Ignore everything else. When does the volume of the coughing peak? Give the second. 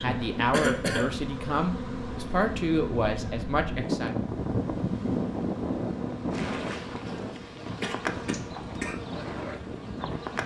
1 s.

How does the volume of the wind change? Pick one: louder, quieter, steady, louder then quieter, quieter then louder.
louder then quieter.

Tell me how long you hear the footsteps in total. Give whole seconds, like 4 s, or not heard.
not heard.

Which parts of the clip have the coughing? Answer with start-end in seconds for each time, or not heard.
0.5-1.1, 7.5-8.9.